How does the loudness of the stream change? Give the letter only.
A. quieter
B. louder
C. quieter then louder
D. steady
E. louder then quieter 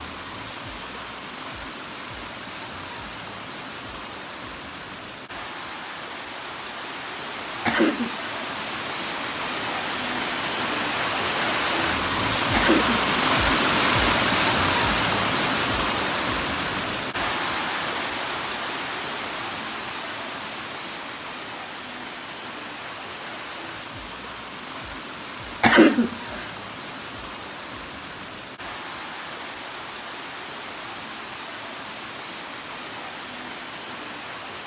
E.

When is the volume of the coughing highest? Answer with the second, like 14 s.
26 s.